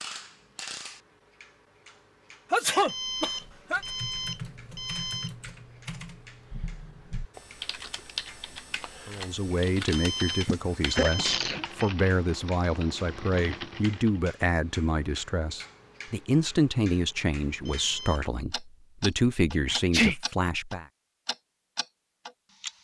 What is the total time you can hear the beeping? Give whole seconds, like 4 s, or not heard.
5 s.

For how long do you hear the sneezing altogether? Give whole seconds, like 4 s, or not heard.
3 s.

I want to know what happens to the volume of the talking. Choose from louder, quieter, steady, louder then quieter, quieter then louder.
steady.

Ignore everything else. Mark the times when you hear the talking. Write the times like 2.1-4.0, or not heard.
9.1-20.9.